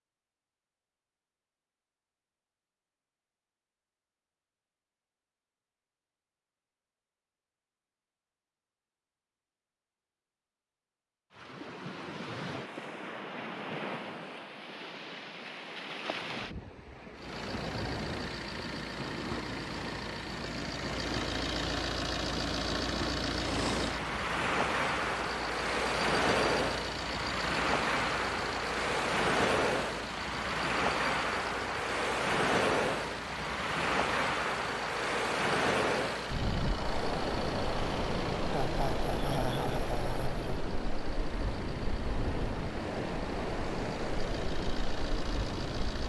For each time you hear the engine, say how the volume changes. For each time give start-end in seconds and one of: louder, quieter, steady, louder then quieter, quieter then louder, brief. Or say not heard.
17.1-46.0 quieter.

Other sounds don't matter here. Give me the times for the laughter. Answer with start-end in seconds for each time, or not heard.
38.5-40.6.